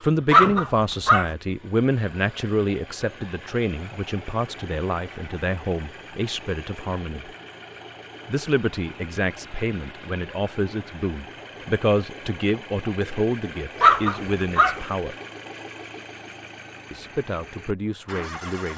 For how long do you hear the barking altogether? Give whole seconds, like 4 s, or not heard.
2 s.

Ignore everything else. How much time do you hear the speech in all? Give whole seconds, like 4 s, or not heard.
16 s.